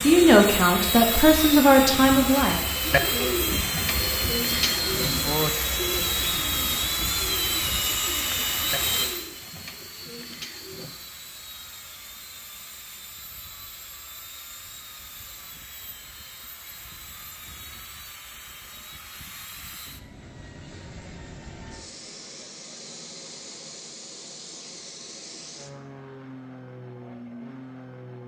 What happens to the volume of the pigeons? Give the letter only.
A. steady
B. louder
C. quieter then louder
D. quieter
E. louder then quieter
D.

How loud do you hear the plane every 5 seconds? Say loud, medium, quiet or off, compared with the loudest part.
loud, loud, quiet, quiet, quiet, quiet.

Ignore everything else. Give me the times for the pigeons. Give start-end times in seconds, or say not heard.
2.8-10.9.